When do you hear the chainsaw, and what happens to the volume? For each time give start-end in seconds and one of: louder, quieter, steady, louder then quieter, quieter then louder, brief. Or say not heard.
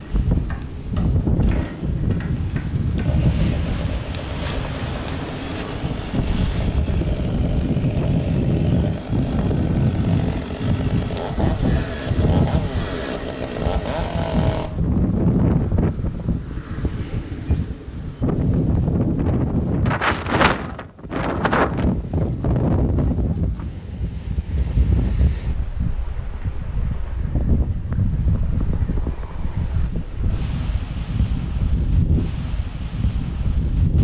0.0-14.7 louder.